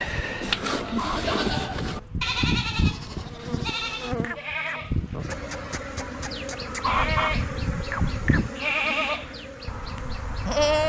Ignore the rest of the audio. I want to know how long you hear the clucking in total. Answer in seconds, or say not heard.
4 s.